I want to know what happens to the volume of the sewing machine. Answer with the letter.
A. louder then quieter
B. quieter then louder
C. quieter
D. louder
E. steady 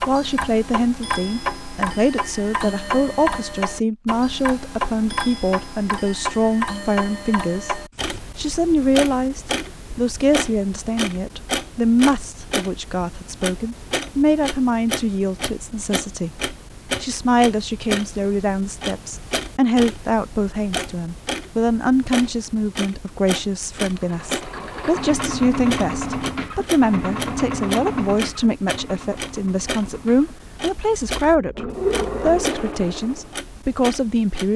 B.